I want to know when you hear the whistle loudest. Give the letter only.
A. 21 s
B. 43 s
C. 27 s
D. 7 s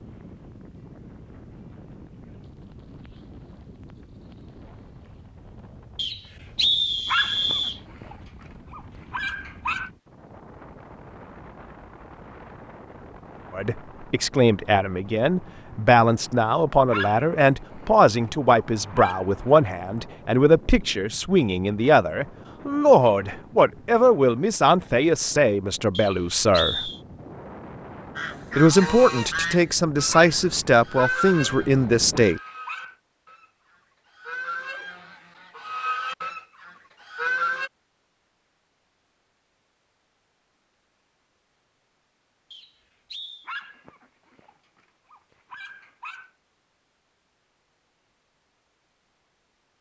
D.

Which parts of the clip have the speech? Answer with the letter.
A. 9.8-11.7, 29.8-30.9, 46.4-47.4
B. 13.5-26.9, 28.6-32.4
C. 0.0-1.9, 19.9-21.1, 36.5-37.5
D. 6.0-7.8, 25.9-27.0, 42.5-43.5
B.